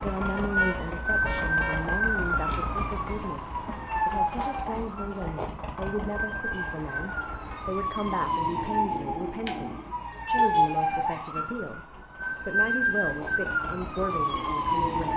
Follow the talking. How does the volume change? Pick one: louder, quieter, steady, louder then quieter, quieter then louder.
steady.